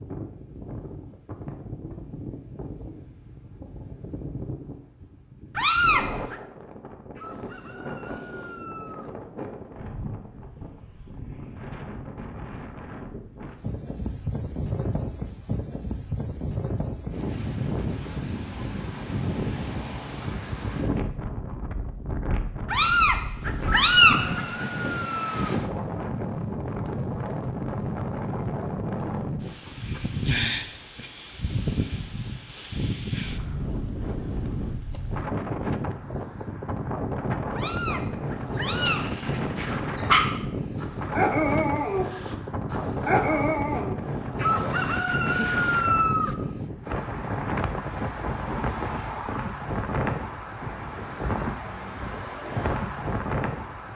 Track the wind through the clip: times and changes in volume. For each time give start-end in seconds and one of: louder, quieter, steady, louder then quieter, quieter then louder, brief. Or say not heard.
0.0-53.9 louder.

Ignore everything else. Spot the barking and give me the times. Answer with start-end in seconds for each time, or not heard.
38.8-44.8.